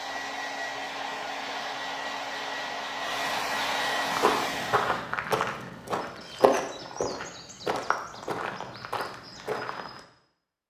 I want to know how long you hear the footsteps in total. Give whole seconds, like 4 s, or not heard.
6 s.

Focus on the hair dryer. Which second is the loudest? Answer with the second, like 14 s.
4 s.